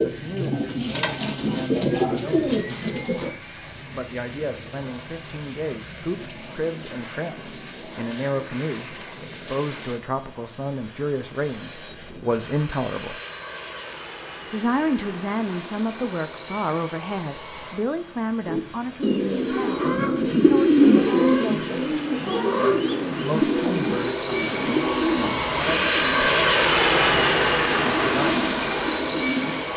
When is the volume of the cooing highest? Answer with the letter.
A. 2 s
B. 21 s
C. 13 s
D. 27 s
B.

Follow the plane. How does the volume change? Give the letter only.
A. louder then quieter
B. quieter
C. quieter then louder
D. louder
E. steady
D.